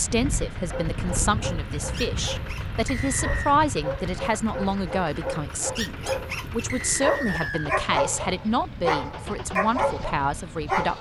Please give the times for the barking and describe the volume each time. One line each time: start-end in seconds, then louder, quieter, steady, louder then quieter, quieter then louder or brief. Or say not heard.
0.7-10.9 louder.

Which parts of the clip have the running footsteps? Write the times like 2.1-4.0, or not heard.
not heard.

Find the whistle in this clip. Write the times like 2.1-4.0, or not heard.
2.9-3.5, 6.7-7.7.